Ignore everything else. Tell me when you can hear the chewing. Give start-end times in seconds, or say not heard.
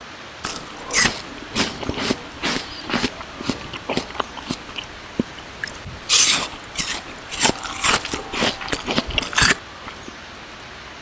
0.4-10.1.